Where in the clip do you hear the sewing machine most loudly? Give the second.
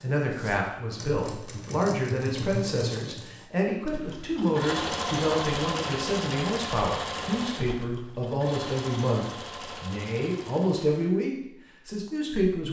5 s.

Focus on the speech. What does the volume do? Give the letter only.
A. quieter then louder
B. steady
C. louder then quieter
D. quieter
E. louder
B.